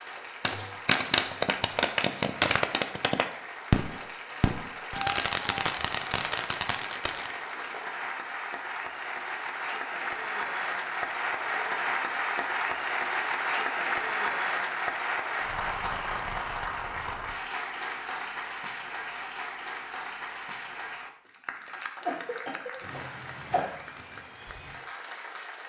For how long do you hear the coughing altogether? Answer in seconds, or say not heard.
2 s.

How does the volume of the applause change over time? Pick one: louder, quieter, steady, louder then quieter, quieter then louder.
louder then quieter.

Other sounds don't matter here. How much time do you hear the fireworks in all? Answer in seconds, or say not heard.
7 s.